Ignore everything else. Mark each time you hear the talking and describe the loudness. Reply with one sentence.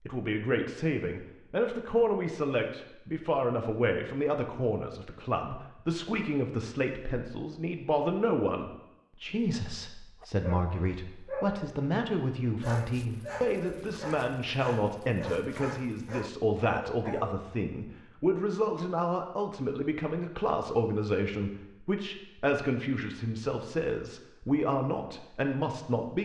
You can hear the talking from 0.0 to 26.2 s, at a steady volume.